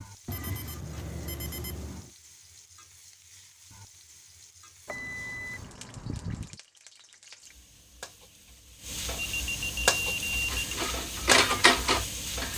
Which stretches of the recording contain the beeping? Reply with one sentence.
The beeping can be heard from 0.2 to 2.1 s, from 4.8 to 6.5 s and from 9.2 to 10.7 s.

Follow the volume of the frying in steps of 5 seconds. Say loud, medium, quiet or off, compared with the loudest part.
quiet, medium, loud.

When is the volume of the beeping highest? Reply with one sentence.
The loudest moment of the beeping is at 10 seconds.